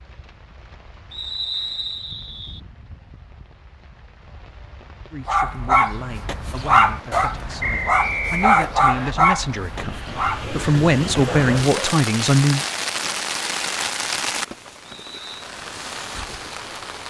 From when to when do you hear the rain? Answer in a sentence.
The rain can be heard from 0.0 to 17.0 s.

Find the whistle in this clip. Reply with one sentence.
The whistle can be heard from 1.1 to 2.6 s, from 7.6 to 9.2 s and from 14.8 to 15.4 s.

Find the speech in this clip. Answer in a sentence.
You can hear the speech from 5.1 to 12.7 s.